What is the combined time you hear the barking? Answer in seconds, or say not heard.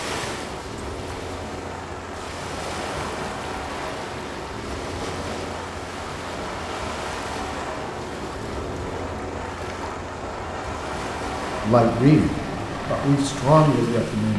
not heard.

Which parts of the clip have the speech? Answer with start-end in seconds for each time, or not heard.
11.6-14.3.